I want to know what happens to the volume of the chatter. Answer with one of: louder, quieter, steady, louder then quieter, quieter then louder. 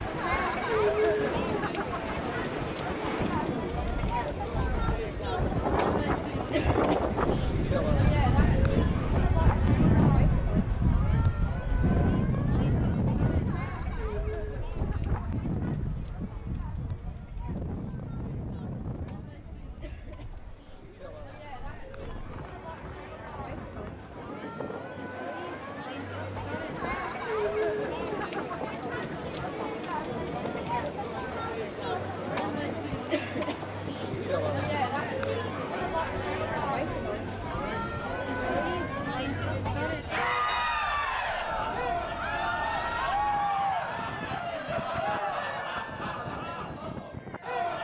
quieter then louder.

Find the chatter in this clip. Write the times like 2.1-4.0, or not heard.
0.0-47.7.